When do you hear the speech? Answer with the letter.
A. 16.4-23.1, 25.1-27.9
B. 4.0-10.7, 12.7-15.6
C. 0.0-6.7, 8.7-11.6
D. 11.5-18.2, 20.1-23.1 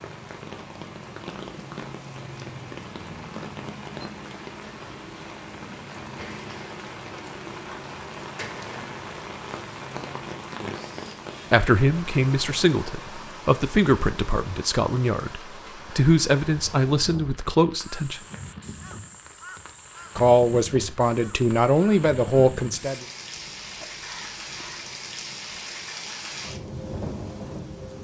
D.